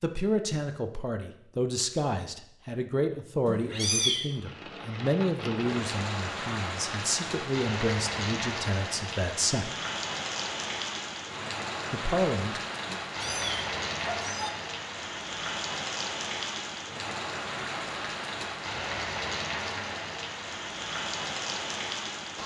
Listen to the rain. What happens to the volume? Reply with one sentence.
The loudness of the rain stays about the same.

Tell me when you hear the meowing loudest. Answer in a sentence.
The volume of the meowing peaks at 4 seconds.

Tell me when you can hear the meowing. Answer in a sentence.
The meowing can be heard from 3.5 to 4.2 s and from 12.8 to 14.5 s.